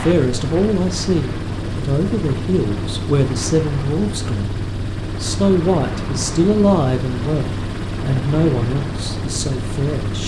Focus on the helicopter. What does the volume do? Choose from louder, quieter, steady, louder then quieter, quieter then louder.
steady.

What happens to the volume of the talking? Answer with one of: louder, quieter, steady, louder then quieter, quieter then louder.
steady.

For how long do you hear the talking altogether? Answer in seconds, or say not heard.
10 s.